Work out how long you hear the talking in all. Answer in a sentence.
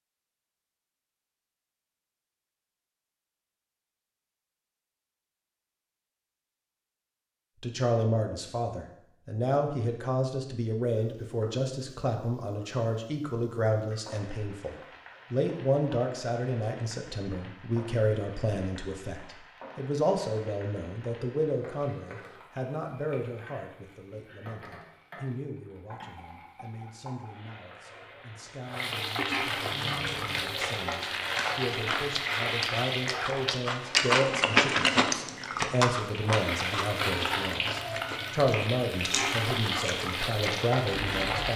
The talking can be heard for 34 seconds in total.